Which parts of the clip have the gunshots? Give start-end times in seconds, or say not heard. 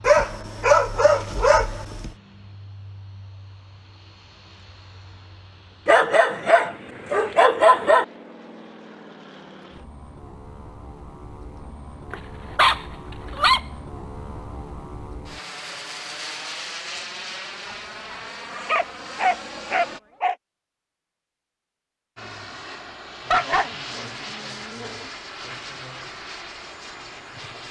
not heard.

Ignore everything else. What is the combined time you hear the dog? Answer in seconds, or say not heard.
10 s.